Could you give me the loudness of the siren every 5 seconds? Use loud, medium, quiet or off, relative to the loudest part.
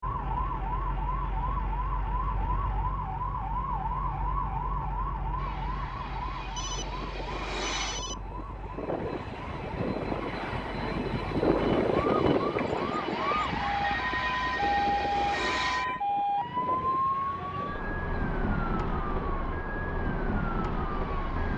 loud, medium, loud, loud, loud.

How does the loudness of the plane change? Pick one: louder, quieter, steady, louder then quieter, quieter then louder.
louder then quieter.